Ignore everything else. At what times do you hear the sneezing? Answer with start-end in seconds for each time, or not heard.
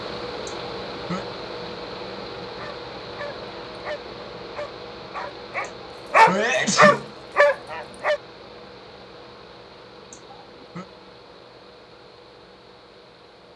0.5-1.2, 5.6-7.1, 10.1-10.8.